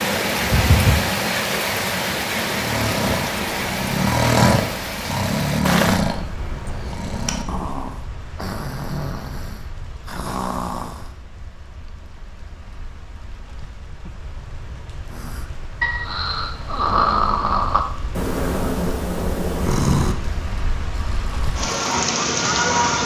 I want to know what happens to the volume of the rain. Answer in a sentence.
The loudness of the rain goes down, then up.